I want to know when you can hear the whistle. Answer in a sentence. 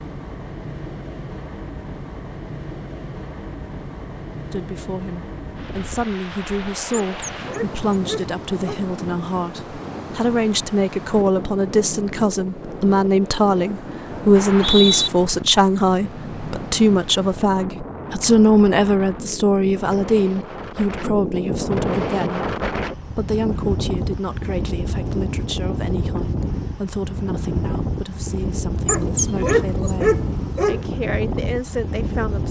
The whistle can be heard from 14.3 to 15.1 s.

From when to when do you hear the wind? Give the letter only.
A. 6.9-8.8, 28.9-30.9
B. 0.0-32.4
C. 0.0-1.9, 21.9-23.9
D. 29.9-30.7
B.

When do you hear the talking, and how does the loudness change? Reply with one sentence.
The talking can be heard from 4.5 to 32.4 s, getting louder then quieter.